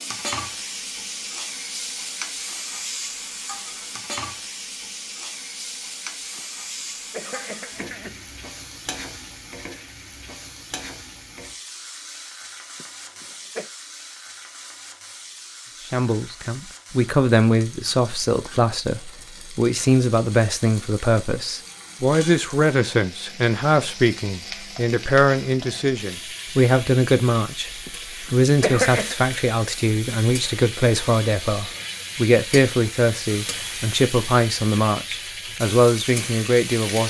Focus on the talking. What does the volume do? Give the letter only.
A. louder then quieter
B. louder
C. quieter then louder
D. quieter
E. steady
E.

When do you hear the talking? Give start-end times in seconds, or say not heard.
15.9-37.0.